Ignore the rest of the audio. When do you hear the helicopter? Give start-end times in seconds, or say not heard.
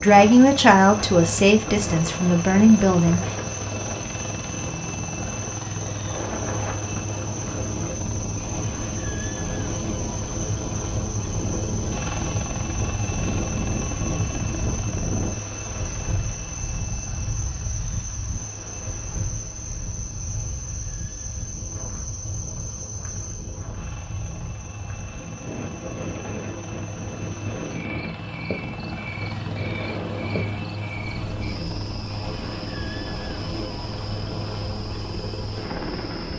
0.0-36.3.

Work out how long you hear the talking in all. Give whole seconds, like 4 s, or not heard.
3 s.